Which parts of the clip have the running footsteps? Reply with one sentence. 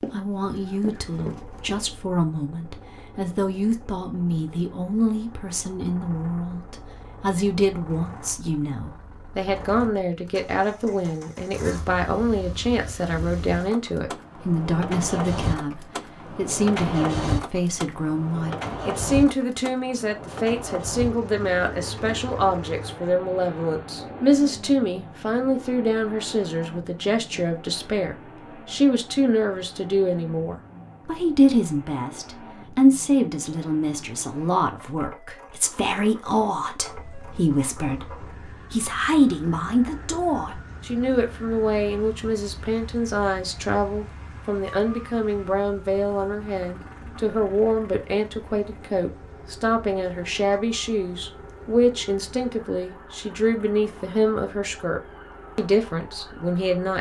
The running footsteps can be heard from 0.0 to 1.9 s.